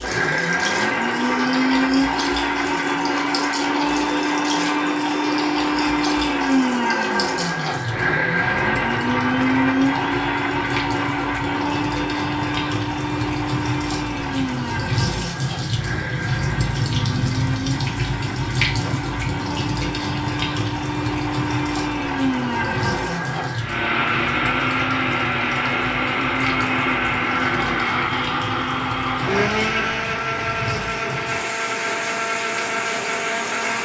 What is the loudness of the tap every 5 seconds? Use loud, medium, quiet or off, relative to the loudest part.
medium, medium, medium, loud, medium, medium, medium.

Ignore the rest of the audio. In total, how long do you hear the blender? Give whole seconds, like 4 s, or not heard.
34 s.